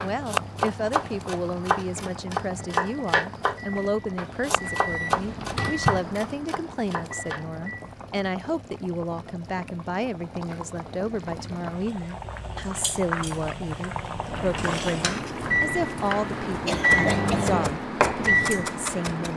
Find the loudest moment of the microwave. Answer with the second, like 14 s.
17 s.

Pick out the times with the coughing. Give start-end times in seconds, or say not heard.
16.6-17.6.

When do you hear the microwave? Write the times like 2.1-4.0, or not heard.
0.0-8.0, 14.2-19.3.